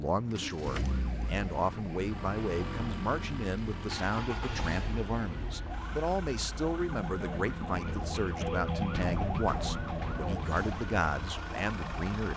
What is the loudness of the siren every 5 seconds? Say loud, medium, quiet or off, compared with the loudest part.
medium, loud, loud.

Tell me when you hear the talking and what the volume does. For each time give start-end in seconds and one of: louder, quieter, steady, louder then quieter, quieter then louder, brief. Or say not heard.
0.0-12.3 steady.